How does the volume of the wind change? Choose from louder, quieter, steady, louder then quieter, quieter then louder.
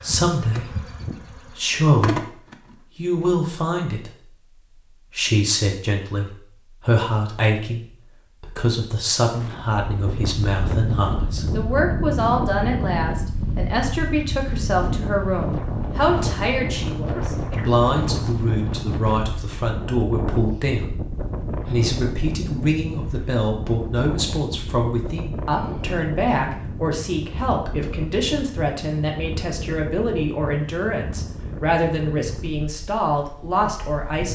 quieter.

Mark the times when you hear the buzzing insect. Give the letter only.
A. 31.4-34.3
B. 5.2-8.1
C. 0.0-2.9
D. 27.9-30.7
C.